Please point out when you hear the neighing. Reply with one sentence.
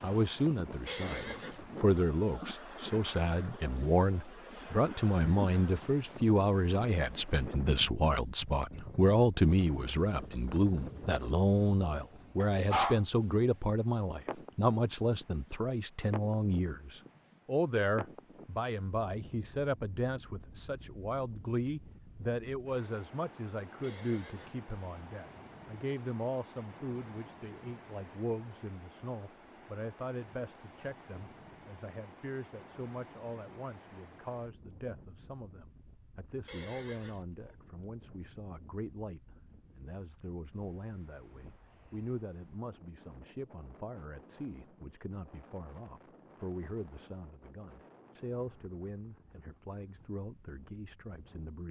The neighing can be heard from 0.8 to 1.6 s, from 23.8 to 24.6 s and from 36.5 to 37.2 s.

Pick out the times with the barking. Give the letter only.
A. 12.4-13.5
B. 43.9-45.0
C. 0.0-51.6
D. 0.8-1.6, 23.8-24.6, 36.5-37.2
A.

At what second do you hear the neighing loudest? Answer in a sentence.
The loudest moment of the neighing is at 1 second.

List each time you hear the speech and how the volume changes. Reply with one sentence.
The speech can be heard from 0.0 to 51.6 s, getting quieter.